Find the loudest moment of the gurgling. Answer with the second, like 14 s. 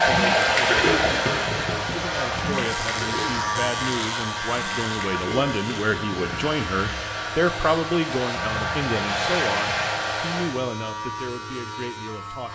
1 s.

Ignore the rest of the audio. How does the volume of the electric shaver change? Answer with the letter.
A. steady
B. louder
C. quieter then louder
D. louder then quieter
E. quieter
E.